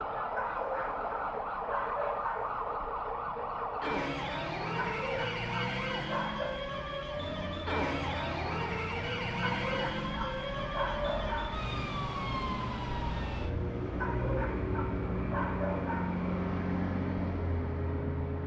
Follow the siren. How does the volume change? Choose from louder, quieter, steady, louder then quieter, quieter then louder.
quieter.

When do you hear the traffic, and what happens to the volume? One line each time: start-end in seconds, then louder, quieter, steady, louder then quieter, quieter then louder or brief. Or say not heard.
7.2-18.4 louder.